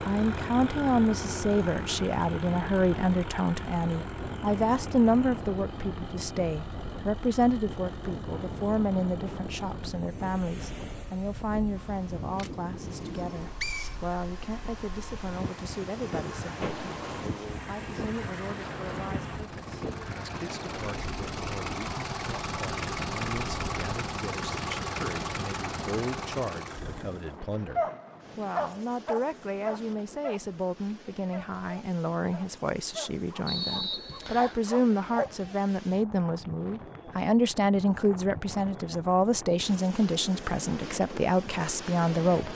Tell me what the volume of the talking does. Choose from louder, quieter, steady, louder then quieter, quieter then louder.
quieter then louder.